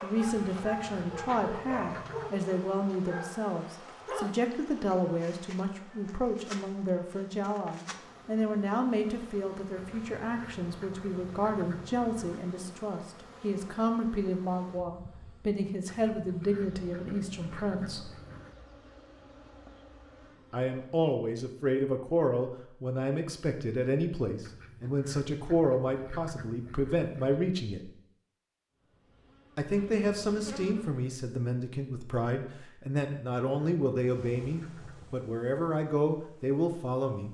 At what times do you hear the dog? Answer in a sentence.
You can hear the dog from 0.0 to 4.4 s.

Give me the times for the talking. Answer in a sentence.
The talking can be heard from 0.0 to 18.1 s, from 20.5 to 27.9 s and from 29.6 to 37.3 s.